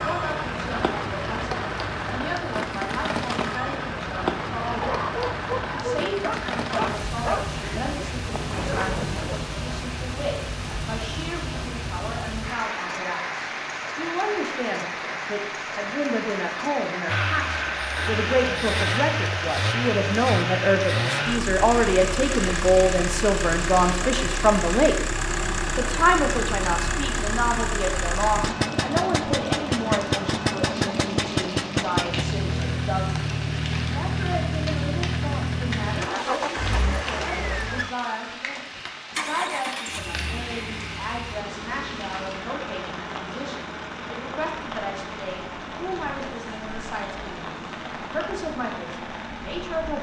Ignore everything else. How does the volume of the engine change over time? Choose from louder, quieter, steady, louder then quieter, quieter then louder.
quieter.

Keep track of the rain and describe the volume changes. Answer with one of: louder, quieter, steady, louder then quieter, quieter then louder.
quieter.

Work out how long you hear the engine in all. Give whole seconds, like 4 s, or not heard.
33 s.